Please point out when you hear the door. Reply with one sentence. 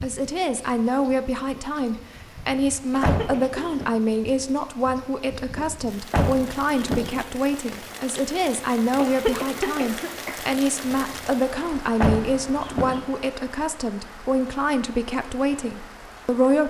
You can hear the door from 3.0 to 3.9 s, from 6.1 to 7.2 s and from 12.0 to 13.0 s.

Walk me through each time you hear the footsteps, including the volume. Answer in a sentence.
The footsteps can't be heard in this clip.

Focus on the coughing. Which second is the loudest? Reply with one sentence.
The volume of the coughing peaks at 9 seconds.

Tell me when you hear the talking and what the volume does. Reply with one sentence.
The talking can be heard from 0.0 to 16.6 s, at a steady volume.